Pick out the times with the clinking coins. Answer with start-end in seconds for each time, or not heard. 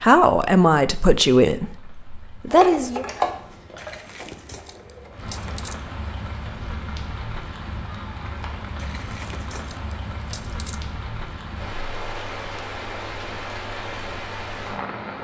3.8-5.8, 8.8-10.8.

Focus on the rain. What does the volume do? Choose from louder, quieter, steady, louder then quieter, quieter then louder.
louder.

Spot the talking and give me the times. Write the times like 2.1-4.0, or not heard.
0.0-3.0.